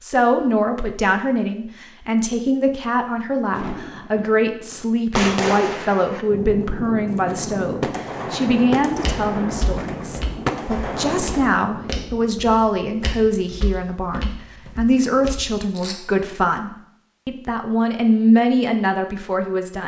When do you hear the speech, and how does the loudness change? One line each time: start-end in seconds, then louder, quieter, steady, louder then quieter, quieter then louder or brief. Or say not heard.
0.0-19.8 steady.